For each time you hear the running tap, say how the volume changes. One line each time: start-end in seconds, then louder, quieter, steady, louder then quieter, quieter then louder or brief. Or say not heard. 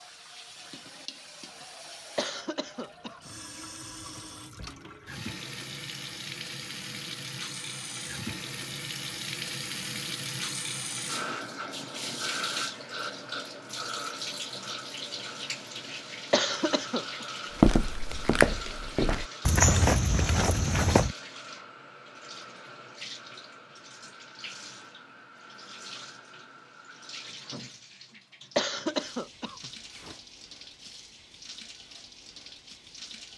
0.0-33.3 louder then quieter.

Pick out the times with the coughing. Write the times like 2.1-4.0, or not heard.
2.1-3.6, 16.3-17.2, 28.6-30.1.